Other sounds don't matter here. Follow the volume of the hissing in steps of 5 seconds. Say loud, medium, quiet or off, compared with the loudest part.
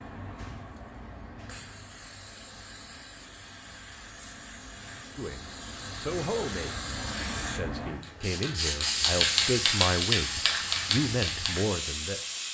quiet, loud, loud.